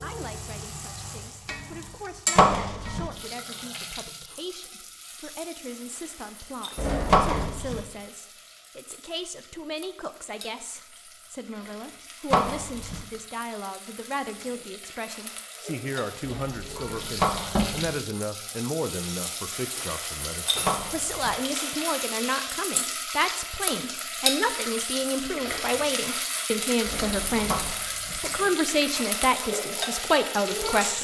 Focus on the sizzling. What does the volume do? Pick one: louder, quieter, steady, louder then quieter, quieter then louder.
quieter then louder.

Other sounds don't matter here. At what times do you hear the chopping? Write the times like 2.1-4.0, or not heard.
2.4-3.1, 7.1-7.8, 12.3-13.1, 17.1-17.8, 20.6-21.4, 27.4-28.2.